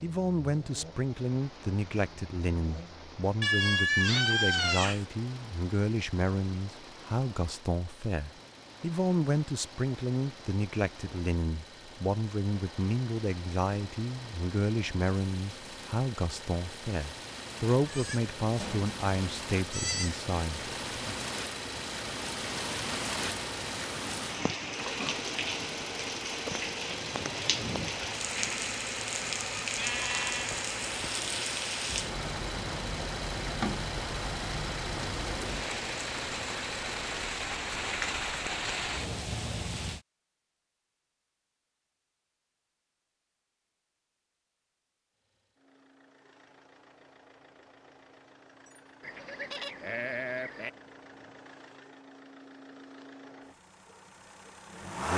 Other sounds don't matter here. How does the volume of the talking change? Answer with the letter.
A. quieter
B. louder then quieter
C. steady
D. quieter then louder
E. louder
C.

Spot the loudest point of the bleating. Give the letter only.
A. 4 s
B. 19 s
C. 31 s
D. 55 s
A.